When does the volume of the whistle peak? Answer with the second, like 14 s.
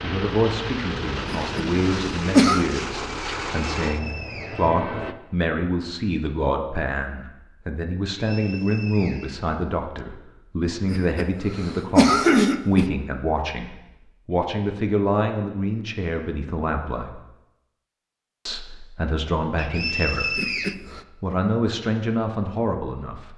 20 s.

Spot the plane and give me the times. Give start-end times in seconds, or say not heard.
0.0-5.2.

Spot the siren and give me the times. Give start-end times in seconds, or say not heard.
not heard.